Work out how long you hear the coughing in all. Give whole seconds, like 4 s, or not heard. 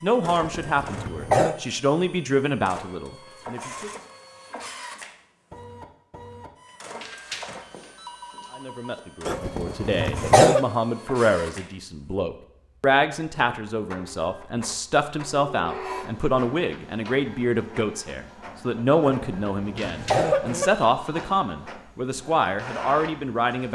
4 s.